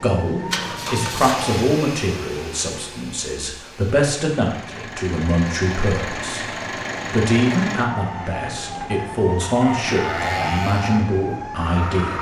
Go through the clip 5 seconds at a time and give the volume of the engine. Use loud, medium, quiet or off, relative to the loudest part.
medium, loud, loud.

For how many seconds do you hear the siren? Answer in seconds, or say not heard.
6 s.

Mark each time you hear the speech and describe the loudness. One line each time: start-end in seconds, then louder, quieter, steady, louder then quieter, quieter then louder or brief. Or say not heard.
0.0-12.1 steady.